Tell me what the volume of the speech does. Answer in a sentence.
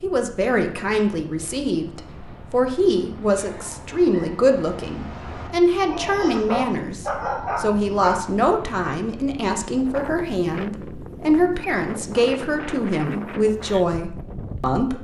The volume of the speech stays about the same.